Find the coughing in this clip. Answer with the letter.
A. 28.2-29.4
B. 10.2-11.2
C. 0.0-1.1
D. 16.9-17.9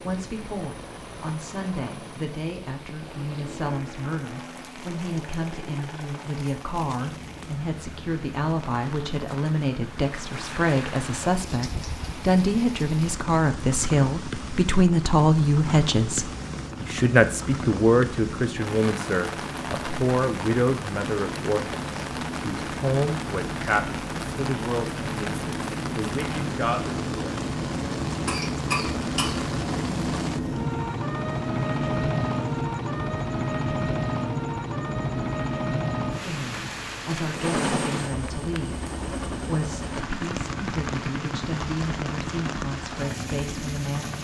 A.